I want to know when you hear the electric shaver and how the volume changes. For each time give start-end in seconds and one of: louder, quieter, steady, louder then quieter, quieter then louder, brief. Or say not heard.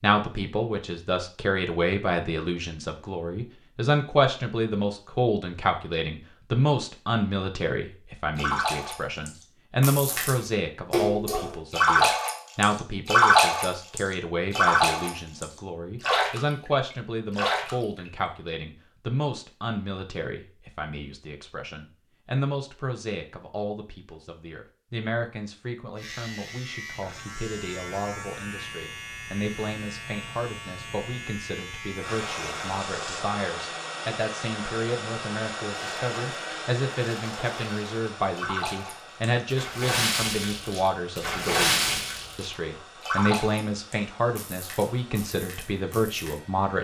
25.9-33.2 steady.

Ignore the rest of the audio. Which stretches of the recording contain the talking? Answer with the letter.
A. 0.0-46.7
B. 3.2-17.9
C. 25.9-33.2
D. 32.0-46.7
A.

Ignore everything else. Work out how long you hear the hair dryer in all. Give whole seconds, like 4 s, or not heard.
15 s.